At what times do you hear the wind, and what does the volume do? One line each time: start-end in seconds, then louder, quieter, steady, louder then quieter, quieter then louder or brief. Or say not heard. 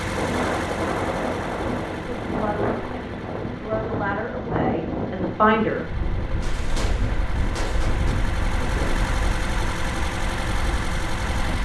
0.0-11.5 quieter.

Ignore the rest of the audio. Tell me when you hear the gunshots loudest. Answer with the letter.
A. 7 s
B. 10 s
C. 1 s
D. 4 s
A.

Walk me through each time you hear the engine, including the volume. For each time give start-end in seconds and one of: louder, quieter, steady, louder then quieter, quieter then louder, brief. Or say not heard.
0.0-11.5 quieter then louder.